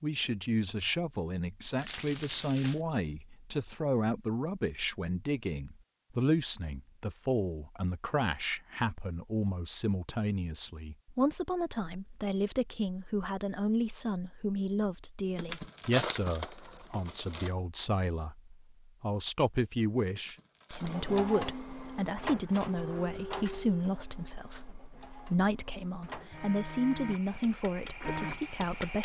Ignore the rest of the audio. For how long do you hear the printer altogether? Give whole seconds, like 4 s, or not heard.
8 s.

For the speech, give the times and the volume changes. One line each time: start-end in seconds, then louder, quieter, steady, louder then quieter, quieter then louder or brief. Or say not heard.
0.0-29.0 steady.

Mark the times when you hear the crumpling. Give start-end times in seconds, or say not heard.
1.8-2.8, 15.3-17.5, 20.1-22.1.